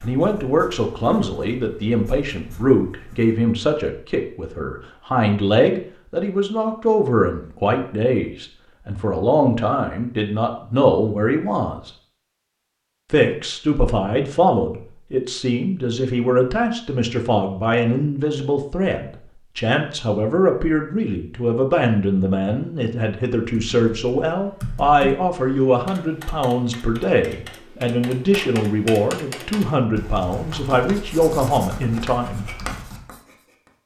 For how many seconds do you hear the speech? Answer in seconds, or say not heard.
31 s.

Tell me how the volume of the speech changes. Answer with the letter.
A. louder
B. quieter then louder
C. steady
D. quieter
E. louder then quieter
C.